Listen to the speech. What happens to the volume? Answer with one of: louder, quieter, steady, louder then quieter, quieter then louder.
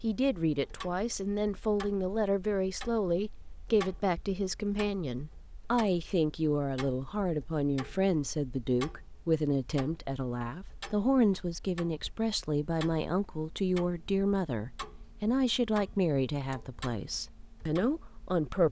steady.